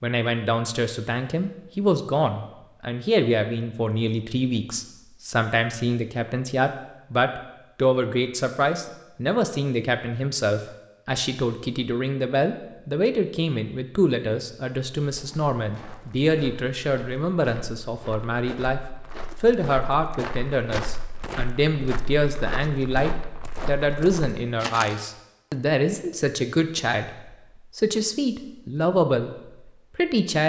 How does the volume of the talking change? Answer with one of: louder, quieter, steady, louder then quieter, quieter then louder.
steady.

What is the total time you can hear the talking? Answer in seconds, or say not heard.
30 s.